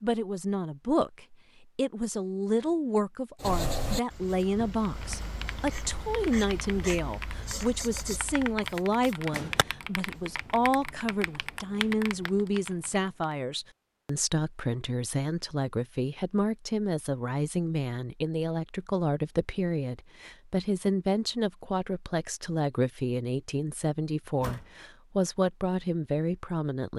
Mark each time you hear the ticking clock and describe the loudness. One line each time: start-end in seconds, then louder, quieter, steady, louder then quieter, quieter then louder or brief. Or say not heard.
not heard.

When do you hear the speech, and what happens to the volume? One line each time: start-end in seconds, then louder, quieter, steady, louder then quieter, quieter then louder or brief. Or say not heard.
0.0-26.9 steady.